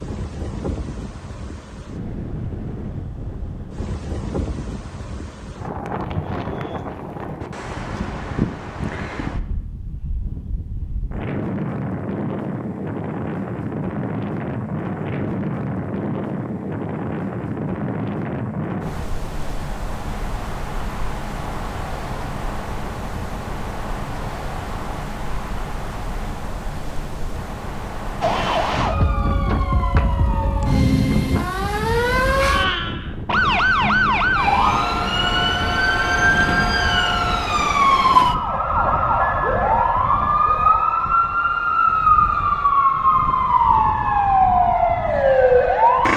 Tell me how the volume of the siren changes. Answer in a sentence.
The volume of the siren goes up.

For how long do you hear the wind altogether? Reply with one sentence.
The wind can be heard for 46 seconds in total.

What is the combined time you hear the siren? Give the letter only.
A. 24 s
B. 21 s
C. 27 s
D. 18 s
D.